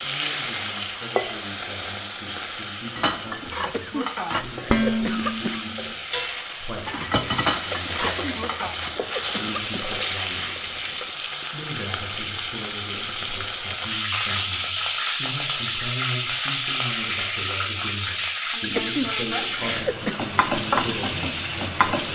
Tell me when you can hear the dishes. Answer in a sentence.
You can hear the dishes from 3.0 to 8.8 s.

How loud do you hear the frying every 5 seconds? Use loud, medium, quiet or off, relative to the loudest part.
medium, medium, loud, loud, loud.